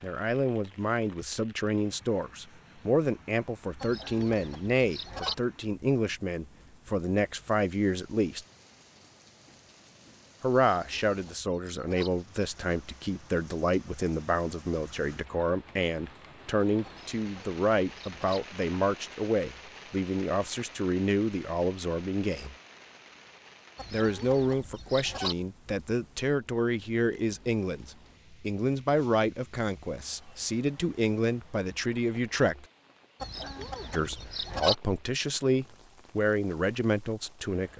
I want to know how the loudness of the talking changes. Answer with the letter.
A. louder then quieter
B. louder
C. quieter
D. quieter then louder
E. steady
E.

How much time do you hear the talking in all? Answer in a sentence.
You can hear the talking for 33 seconds altogether.